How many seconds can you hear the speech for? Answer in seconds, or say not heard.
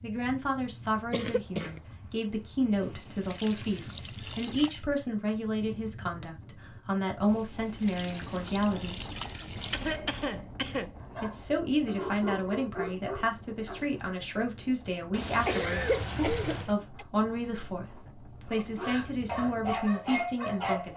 19 s.